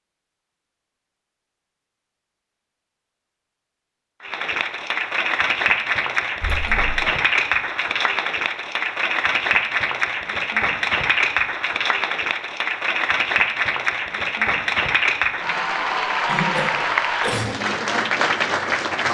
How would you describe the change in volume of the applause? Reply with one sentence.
The loudness of the applause stays about the same.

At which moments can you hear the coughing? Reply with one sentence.
The coughing can be heard from 6.4 to 7.0 s and from 16.2 to 17.6 s.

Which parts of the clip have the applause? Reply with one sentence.
The applause can be heard from 4.2 to 19.0 s.